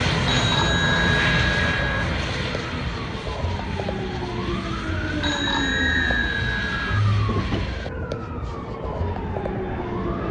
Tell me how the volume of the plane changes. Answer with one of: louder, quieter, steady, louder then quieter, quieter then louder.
quieter.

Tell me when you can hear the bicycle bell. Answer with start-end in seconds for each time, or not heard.
0.2-2.0, 5.2-7.0.